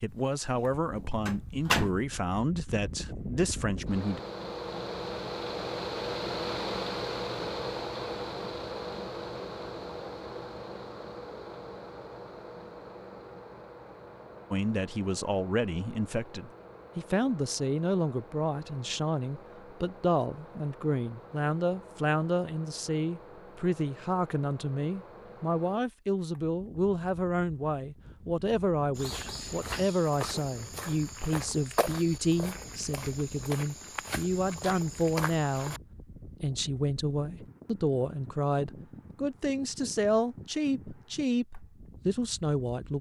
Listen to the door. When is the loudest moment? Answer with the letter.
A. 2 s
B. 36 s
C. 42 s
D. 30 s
A.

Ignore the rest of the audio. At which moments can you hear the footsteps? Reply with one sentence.
You can hear the footsteps from 28.9 to 35.8 s.